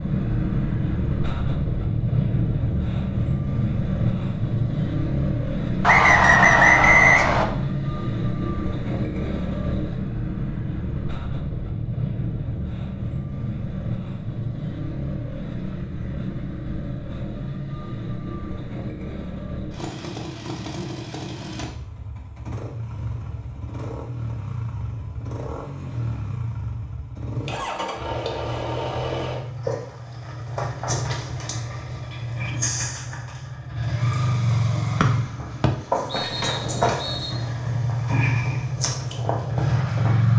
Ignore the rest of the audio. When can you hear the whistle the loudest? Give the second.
7 s.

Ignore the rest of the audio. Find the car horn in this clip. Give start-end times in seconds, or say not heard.
not heard.